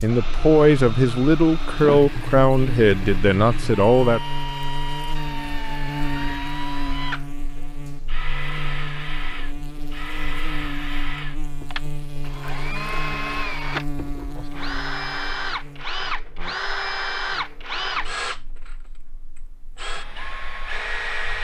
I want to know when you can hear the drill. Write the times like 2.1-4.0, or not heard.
0.0-21.3.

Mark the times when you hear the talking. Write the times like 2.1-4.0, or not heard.
0.0-4.2.